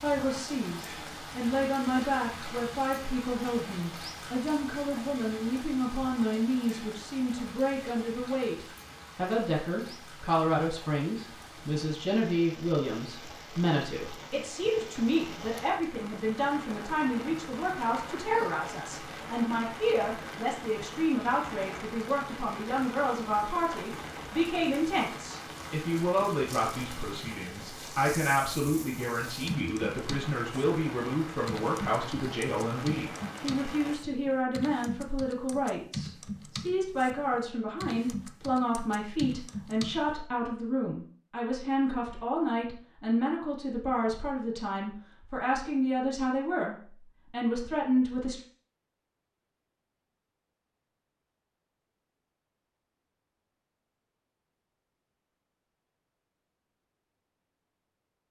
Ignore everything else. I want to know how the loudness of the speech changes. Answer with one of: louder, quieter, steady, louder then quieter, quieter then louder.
steady.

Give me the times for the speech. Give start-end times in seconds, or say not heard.
0.0-48.4.